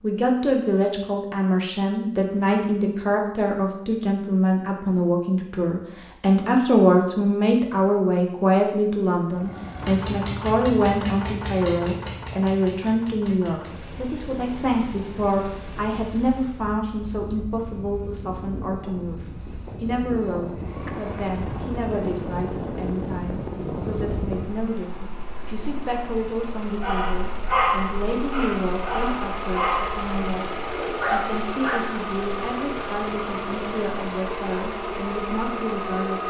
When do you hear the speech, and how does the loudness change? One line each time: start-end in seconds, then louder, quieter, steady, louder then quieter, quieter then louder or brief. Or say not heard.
0.0-36.2 quieter.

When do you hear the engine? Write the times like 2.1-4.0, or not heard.
9.2-16.8, 20.5-36.2.